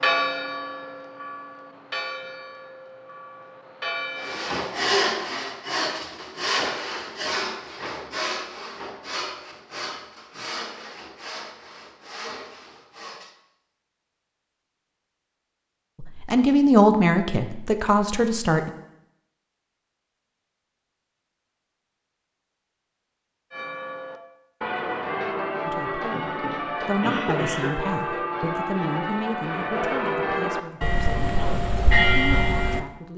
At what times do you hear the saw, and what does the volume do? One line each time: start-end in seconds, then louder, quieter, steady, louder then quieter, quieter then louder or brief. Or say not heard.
4.2-13.3 quieter.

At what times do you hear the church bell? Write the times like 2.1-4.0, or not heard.
0.0-4.6, 23.5-33.1.